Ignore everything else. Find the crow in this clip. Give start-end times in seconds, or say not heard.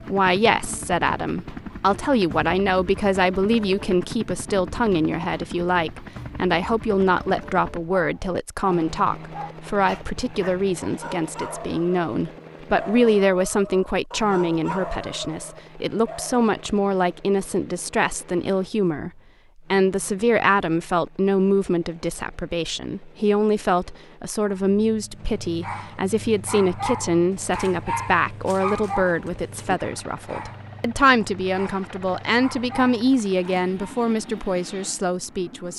not heard.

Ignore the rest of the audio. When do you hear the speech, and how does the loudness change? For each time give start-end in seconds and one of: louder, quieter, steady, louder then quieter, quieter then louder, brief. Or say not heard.
0.1-19.1 steady
19.7-35.7 steady.